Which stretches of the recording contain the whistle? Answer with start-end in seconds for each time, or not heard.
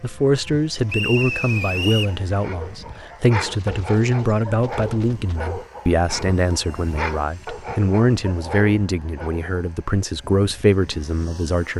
0.8-2.1.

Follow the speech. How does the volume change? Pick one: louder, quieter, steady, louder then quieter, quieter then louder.
steady.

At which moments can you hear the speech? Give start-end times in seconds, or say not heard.
0.0-11.7.